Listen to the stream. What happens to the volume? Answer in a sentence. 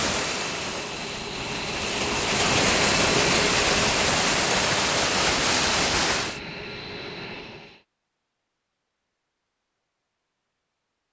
The volume of the stream goes up.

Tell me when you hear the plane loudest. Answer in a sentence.
The loudest moment of the plane is at 3 seconds.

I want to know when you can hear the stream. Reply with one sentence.
The stream can be heard from 0.0 to 6.4 s.